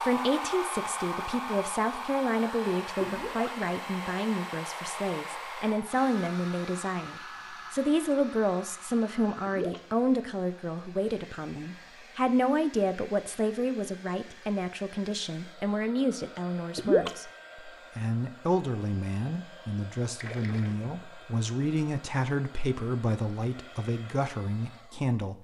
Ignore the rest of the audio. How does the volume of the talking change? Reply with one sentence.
The volume of the talking stays about the same.